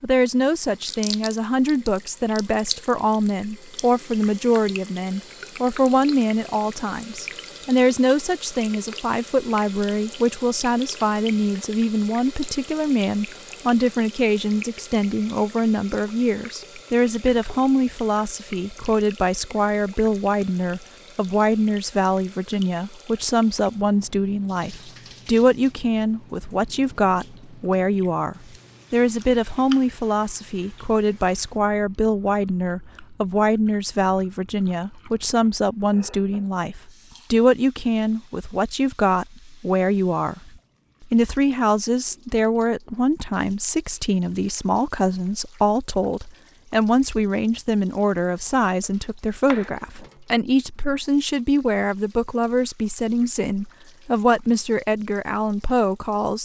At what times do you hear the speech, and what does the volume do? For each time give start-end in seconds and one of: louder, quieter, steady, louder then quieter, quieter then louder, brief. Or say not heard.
0.0-56.3 steady.